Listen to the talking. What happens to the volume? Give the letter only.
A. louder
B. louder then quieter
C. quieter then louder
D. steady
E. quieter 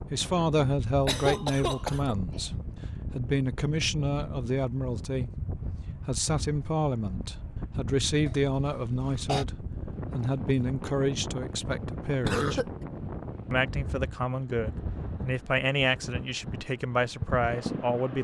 D.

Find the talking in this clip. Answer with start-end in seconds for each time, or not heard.
0.0-5.5, 6.0-12.6, 13.5-18.1.